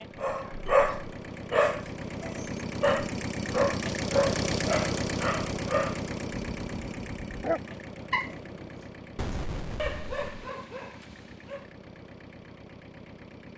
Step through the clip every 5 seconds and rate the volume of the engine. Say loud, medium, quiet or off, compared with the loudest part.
loud, loud, quiet.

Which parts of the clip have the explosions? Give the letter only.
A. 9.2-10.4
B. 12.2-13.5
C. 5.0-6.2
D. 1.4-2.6
A.